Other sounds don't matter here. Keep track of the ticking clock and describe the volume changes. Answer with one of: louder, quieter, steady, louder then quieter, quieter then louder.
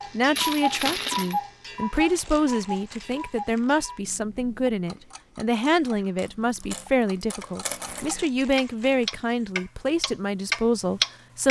quieter then louder.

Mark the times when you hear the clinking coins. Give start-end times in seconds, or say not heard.
0.3-1.4, 6.2-8.1.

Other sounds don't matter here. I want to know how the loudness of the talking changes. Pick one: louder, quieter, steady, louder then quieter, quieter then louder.
steady.